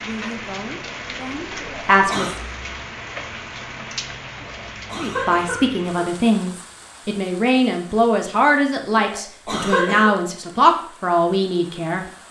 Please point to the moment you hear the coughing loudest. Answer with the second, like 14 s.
10 s.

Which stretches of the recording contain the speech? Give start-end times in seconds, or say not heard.
0.0-2.3, 5.0-12.1.